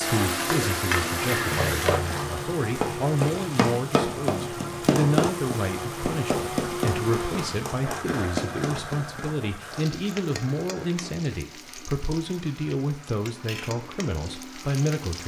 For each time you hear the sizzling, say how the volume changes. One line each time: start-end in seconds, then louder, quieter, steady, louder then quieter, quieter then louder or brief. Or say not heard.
0.0-15.2 quieter.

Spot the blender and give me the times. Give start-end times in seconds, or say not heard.
0.0-15.2.